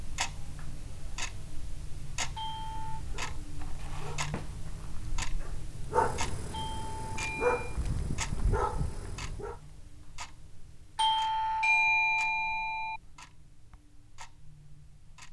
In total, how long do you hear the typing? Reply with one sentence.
You can't hear the typing here.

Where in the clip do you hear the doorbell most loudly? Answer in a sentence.
The volume of the doorbell peaks at 12 seconds.